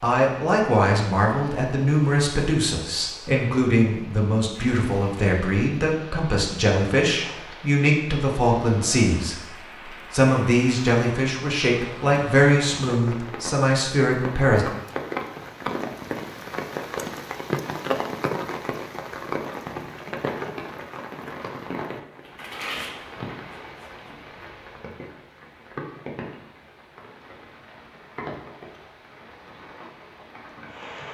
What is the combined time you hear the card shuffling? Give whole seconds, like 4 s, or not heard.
2 s.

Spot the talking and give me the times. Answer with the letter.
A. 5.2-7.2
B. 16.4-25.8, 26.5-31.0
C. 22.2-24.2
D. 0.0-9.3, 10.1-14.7
D.